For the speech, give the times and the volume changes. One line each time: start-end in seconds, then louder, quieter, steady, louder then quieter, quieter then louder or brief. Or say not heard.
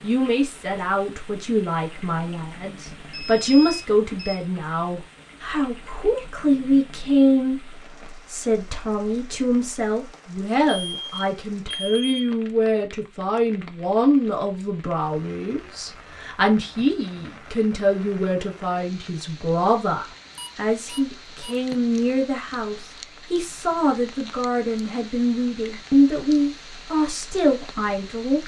0.0-28.4 steady.